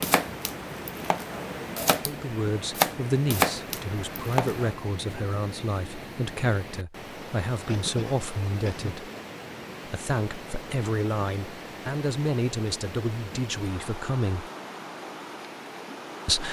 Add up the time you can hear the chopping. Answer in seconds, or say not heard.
5 s.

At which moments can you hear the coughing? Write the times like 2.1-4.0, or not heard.
7.7-8.9.